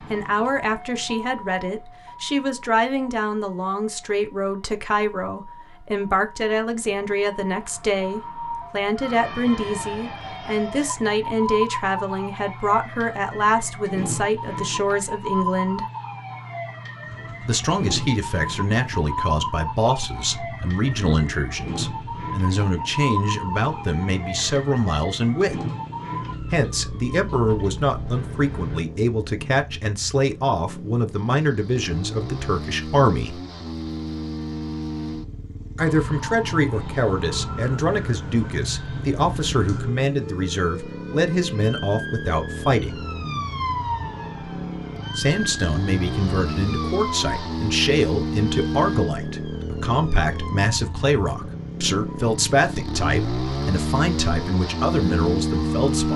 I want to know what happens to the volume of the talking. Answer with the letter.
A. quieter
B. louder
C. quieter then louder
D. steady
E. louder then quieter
D.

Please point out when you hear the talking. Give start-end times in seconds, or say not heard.
0.1-15.8, 17.4-25.6, 26.5-33.4, 35.8-43.0, 45.1-56.1.